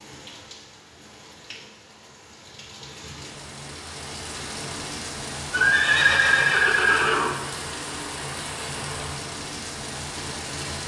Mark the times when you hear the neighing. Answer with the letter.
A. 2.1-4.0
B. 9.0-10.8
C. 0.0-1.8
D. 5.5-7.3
D.